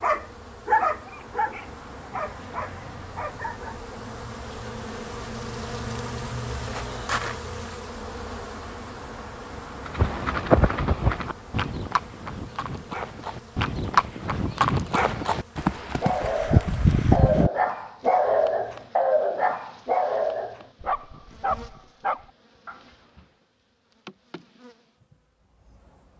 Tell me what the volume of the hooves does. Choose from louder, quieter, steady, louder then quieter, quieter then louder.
quieter then louder.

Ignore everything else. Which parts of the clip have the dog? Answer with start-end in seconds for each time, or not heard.
0.0-3.8, 15.8-23.2.